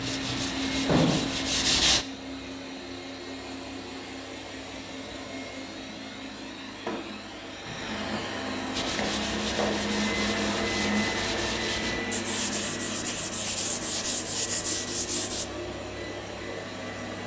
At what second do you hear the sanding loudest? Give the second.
2 s.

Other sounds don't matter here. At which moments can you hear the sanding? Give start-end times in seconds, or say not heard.
0.0-2.0, 8.7-15.4.